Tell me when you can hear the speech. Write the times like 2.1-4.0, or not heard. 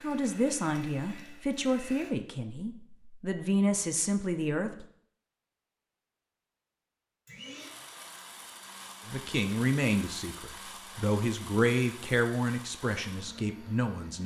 0.0-4.8, 9.1-14.2.